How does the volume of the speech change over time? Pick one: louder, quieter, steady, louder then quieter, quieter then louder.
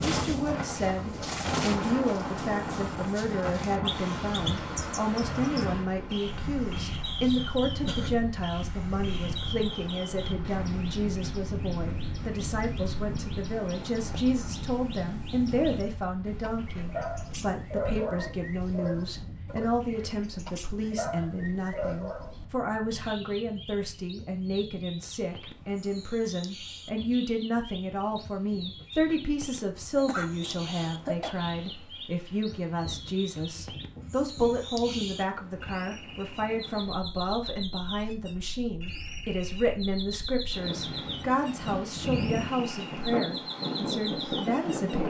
steady.